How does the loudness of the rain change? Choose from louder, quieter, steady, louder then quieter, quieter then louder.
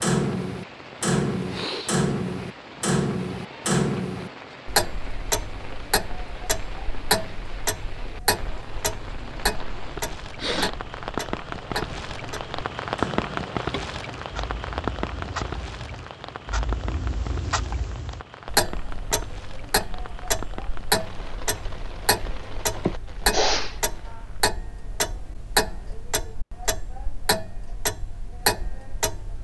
louder then quieter.